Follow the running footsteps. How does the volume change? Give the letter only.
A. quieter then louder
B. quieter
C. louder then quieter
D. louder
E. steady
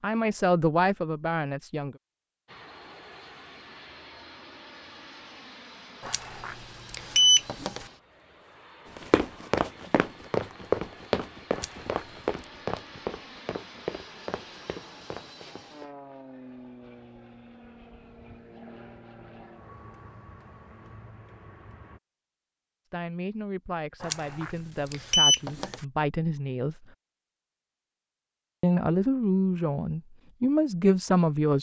B.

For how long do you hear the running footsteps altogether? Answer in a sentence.
You can hear the running footsteps for 7 seconds altogether.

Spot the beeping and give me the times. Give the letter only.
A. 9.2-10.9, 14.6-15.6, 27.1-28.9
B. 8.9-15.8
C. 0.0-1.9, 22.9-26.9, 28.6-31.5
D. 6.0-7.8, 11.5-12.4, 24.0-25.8
D.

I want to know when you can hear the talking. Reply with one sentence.
You can hear the talking from 0.0 to 1.9 s, from 22.9 to 26.9 s and from 28.6 to 31.5 s.